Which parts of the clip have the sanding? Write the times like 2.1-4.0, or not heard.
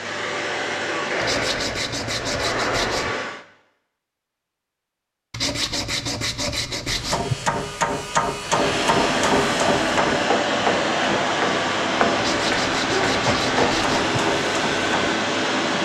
1.2-3.1, 5.3-7.3, 12.2-14.2.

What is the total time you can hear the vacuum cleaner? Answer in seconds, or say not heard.
11 s.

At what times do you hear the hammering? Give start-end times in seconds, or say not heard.
6.8-15.2.